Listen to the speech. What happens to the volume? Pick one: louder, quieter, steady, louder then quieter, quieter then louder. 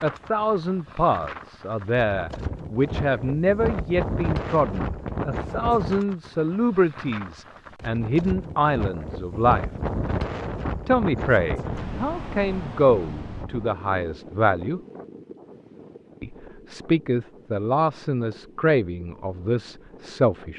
steady.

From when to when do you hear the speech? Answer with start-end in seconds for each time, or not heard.
0.0-9.7, 10.8-14.8, 16.2-20.5.